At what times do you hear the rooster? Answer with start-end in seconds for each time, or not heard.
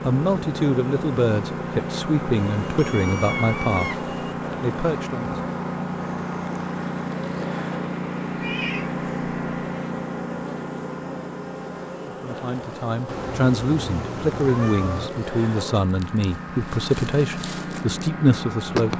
not heard.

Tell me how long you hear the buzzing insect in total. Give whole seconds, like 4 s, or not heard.
19 s.